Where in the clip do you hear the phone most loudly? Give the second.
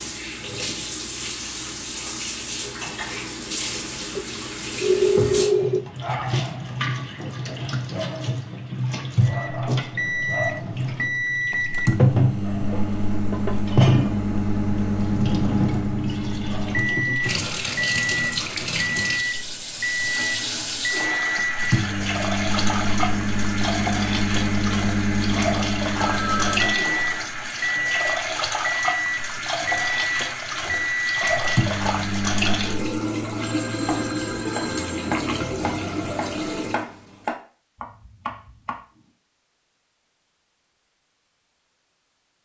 5 s.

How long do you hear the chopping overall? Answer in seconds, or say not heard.
5 s.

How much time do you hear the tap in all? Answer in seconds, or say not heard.
37 s.